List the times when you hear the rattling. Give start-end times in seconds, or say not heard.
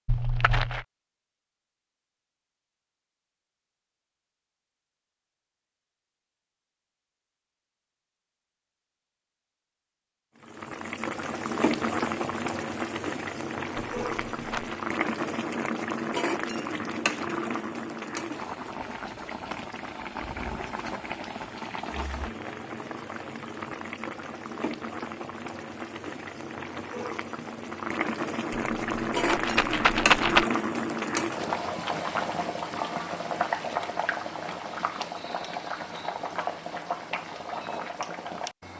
0.1-0.8, 14.0-14.8, 28.7-30.4.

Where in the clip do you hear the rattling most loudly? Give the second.
30 s.